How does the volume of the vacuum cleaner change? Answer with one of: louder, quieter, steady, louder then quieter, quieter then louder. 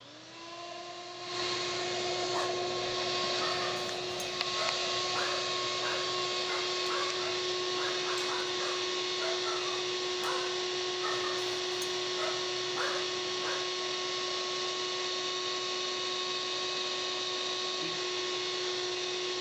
steady.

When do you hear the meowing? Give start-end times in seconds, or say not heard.
not heard.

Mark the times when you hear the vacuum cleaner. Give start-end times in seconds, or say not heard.
0.0-19.3.